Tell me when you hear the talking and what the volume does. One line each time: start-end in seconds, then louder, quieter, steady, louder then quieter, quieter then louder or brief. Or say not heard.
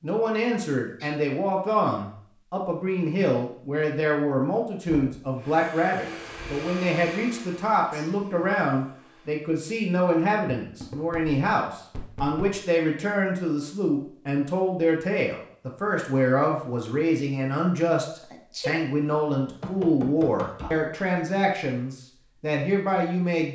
0.0-23.4 steady.